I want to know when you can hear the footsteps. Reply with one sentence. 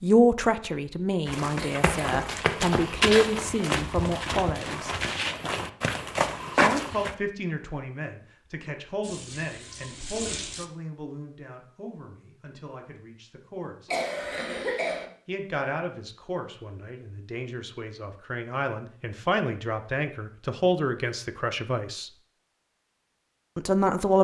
You can hear the footsteps from 1.2 to 7.2 s.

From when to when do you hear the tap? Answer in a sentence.
You can hear the tap from 9.0 to 10.7 s.